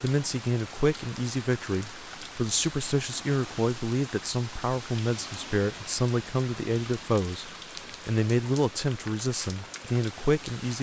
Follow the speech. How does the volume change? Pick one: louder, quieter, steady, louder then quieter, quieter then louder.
steady.